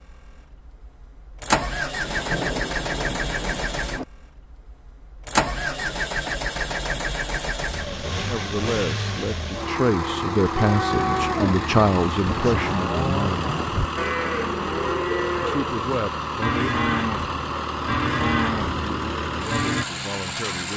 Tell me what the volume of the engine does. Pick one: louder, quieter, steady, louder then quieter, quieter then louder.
steady.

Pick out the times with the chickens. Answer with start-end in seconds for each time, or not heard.
not heard.